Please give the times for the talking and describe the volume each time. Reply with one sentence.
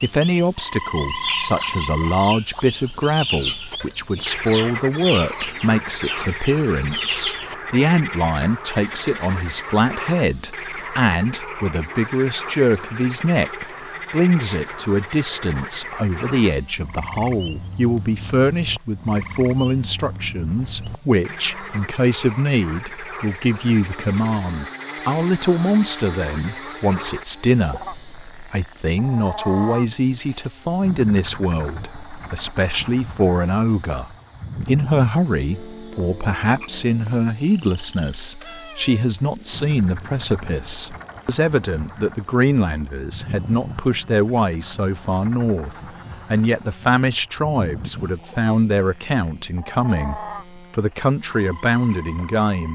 The talking can be heard from 0.0 to 52.6 s, at a steady volume.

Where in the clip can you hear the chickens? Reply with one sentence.
The chickens can be heard from 1.1 to 7.8 s.